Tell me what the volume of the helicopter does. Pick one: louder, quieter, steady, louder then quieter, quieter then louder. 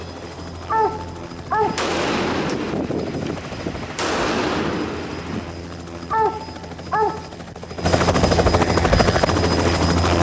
louder.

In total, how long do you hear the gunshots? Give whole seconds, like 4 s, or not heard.
4 s.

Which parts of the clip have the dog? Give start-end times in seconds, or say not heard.
0.7-1.9, 6.1-7.3.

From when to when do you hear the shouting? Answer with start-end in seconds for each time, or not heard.
not heard.